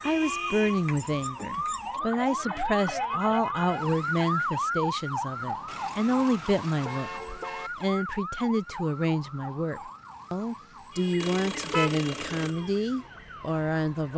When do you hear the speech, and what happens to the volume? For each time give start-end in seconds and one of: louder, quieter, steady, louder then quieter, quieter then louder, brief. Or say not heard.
0.0-14.1 steady.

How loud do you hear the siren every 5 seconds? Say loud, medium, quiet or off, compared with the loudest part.
loud, medium, quiet.